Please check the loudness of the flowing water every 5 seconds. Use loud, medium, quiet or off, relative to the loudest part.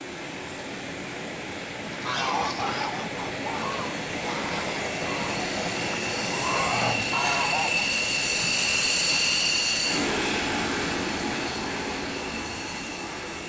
loud, loud, medium.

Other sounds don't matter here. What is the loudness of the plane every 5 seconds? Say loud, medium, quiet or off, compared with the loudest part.
quiet, loud, loud.